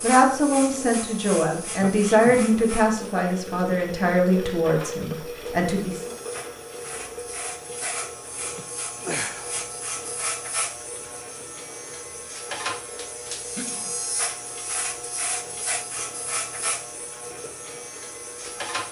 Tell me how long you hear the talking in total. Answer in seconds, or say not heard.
6 s.